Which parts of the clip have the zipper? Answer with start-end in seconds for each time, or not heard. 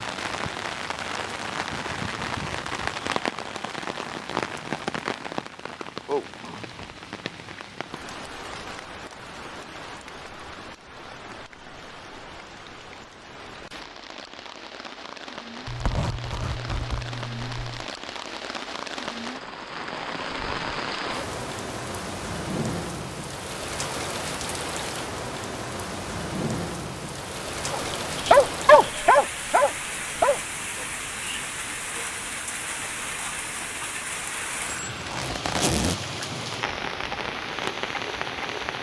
15.7-17.9, 34.6-36.0.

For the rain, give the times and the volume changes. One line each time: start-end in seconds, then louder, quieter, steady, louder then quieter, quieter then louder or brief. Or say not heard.
0.0-38.7 quieter then louder.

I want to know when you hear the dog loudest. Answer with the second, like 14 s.
29 s.